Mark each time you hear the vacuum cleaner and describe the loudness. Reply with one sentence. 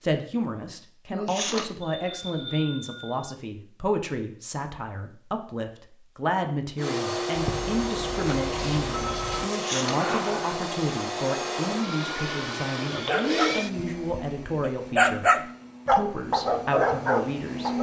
The vacuum cleaner can be heard from 6.8 to 17.7 s, getting quieter.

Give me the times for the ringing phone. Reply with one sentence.
The ringing phone can be heard from 1.8 to 3.4 s, from 7.3 to 9.4 s and from 12.8 to 13.7 s.